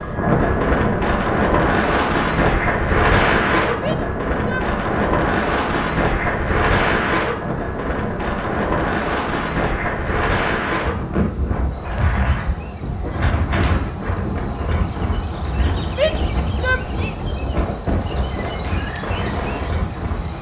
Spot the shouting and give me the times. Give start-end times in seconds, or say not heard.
3.8-4.7, 15.9-17.1.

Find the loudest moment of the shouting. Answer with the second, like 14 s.
16 s.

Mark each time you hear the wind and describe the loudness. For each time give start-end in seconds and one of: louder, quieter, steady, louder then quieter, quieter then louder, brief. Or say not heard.
0.0-20.3 quieter.